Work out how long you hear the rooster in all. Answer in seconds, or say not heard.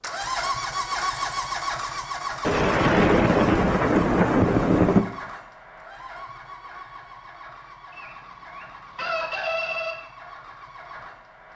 2 s.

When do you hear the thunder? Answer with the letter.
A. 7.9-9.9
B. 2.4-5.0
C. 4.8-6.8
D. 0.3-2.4
B.